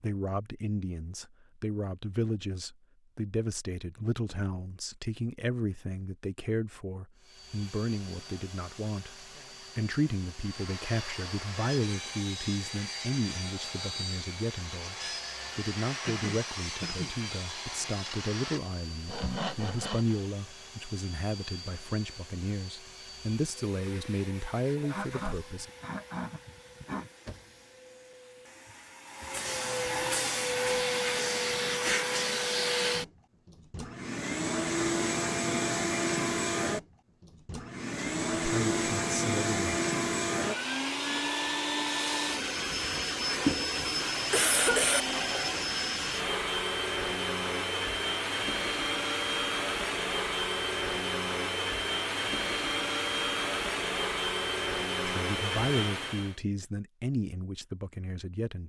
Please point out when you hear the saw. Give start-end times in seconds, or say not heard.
10.4-20.2.